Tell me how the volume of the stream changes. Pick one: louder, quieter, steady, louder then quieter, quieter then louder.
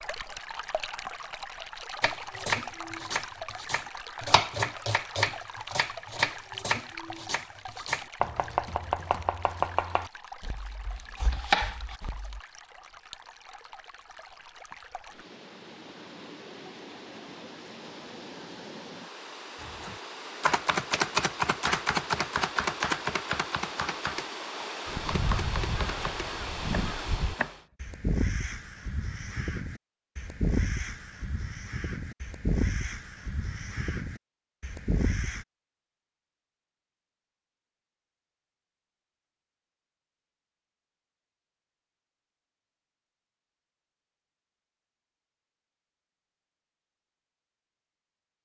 quieter then louder.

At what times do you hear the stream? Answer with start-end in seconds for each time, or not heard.
0.0-27.6.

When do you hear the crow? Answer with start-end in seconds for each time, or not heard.
24.9-35.5.